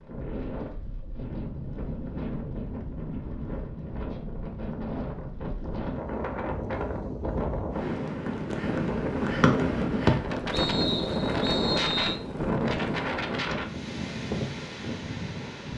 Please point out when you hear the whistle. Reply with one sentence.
The whistle can be heard from 9.4 to 12.2 s.